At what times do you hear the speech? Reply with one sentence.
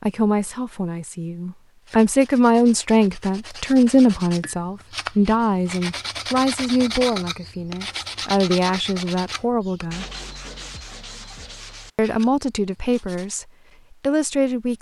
The speech can be heard from 0.0 to 10.1 s and from 11.9 to 14.7 s.